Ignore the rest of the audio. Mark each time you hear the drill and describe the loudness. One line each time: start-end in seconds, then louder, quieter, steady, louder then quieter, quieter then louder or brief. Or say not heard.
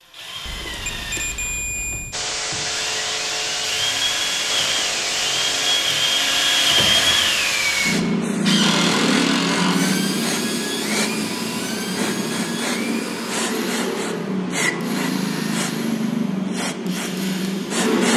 0.0-17.9 louder then quieter.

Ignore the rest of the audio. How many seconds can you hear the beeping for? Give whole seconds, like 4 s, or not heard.
2 s.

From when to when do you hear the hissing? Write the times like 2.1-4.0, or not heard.
2.1-18.1.